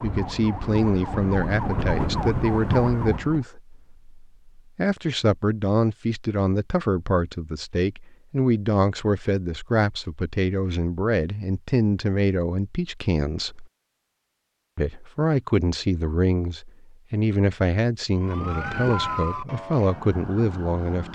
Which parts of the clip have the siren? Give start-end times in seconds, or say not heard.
0.0-3.5, 18.1-21.0.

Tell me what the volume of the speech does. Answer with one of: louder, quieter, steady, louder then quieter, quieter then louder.
steady.